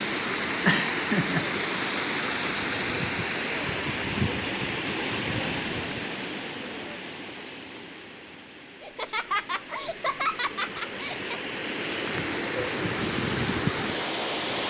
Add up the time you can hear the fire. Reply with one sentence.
You can't hear the fire here.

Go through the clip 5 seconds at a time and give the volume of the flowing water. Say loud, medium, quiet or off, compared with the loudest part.
loud, medium, loud.